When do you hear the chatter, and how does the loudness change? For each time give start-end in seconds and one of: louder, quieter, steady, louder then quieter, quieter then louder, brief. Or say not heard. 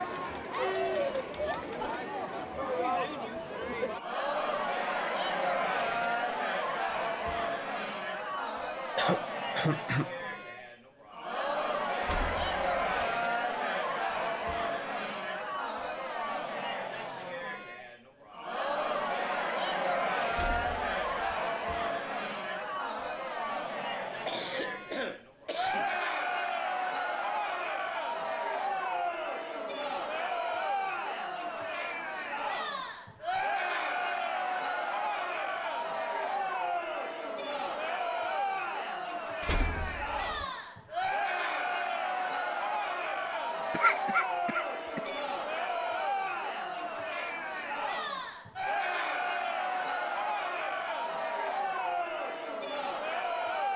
0.0-53.7 steady.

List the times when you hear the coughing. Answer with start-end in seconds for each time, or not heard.
8.9-10.1, 24.2-26.0, 43.7-45.2.